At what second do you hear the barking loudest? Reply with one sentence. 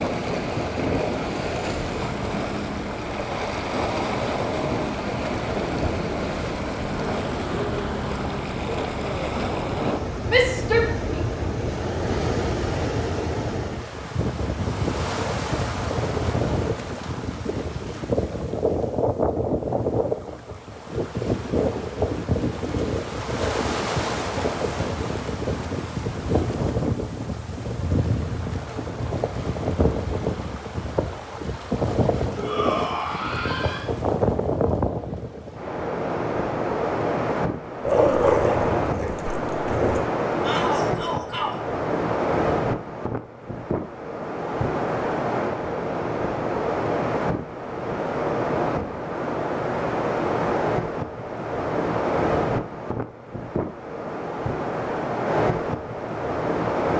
The volume of the barking peaks at 38 seconds.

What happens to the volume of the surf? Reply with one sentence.
The loudness of the surf stays about the same.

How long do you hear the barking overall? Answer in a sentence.
The barking can be heard for 2 seconds in total.